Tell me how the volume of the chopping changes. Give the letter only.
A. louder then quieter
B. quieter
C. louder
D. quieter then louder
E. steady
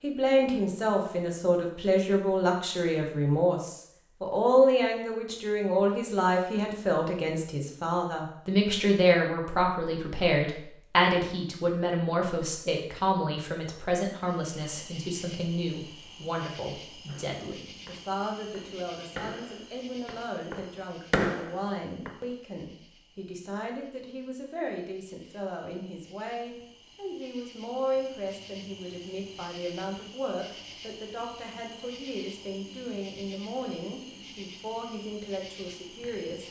C.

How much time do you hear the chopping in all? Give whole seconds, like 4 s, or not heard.
5 s.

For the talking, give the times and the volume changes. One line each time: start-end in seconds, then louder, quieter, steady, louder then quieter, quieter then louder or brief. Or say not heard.
0.0-36.4 quieter.